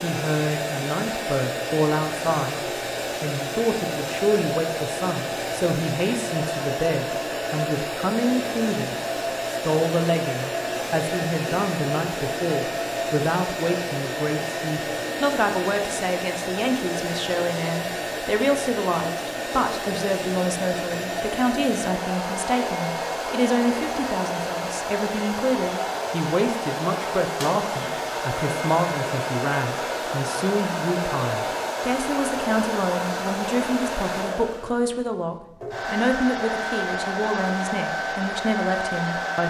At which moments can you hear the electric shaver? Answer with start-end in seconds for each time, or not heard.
not heard.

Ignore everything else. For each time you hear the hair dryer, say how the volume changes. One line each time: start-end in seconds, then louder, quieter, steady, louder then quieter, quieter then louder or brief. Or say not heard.
0.0-39.4 steady.